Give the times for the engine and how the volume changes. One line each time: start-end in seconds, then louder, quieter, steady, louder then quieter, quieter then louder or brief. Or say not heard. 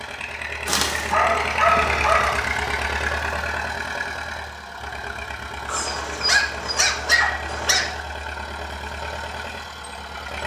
0.0-10.4 quieter.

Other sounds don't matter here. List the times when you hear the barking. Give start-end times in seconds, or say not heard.
0.7-2.4, 5.7-8.0.